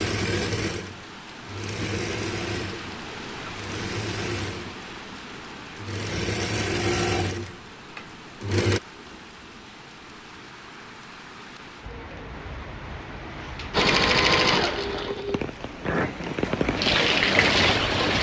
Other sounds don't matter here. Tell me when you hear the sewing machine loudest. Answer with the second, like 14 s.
14 s.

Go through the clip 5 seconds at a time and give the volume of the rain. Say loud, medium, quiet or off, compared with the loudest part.
quiet, quiet, quiet, loud.